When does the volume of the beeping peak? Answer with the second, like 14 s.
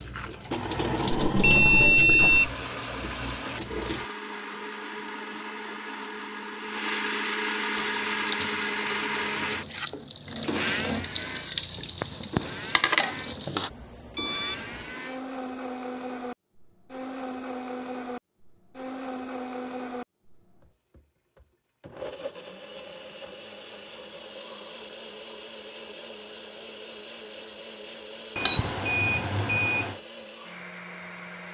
2 s.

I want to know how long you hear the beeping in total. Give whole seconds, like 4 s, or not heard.
4 s.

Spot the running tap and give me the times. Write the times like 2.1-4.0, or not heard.
0.0-4.1, 7.8-13.7.